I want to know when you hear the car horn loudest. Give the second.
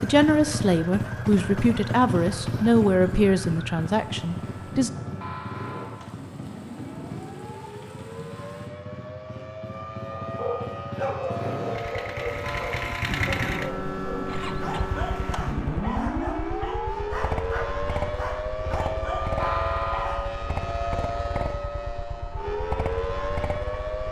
20 s.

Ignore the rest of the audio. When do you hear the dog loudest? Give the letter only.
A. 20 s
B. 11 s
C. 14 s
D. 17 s
B.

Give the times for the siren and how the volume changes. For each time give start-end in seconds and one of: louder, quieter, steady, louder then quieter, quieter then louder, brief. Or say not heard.
0.0-24.0 louder.